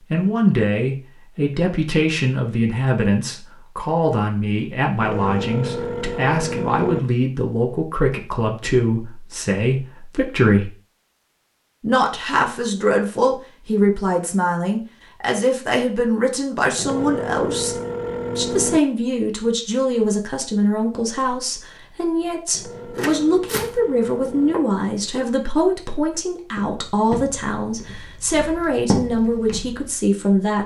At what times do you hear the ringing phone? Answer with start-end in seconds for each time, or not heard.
5.0-7.0, 16.8-18.8, 22.5-24.6.